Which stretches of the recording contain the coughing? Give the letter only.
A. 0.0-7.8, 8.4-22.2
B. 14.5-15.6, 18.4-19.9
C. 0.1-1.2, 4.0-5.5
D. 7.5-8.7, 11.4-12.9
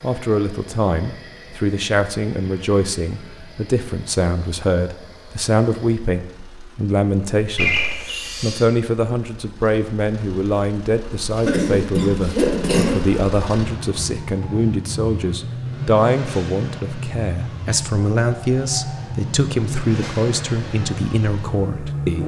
D.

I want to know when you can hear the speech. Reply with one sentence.
You can hear the speech from 0.0 to 7.8 s and from 8.4 to 22.2 s.